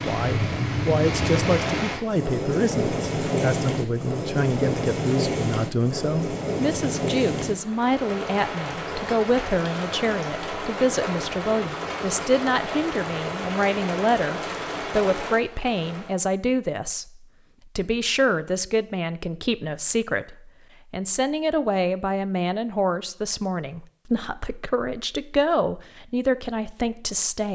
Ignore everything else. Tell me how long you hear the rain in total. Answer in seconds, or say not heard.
16 s.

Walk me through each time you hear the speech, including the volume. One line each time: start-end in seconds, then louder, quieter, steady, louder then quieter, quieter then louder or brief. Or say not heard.
0.0-27.5 steady.